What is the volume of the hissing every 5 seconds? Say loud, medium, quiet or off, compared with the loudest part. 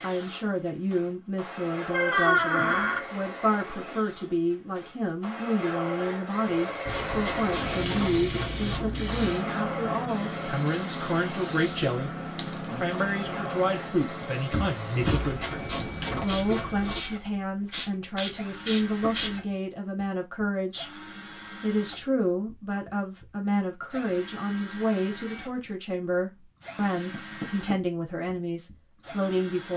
off, loud, loud, loud, off, off.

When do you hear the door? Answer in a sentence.
You can hear the door from 1.9 to 3.0 s, from 14.5 to 15.3 s and from 27.1 to 27.8 s.